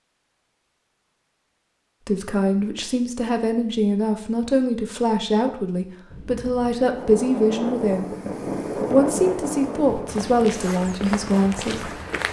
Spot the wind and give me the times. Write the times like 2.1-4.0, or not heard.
6.1-12.2.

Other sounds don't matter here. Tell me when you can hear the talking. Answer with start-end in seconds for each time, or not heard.
2.0-8.1, 8.8-11.9.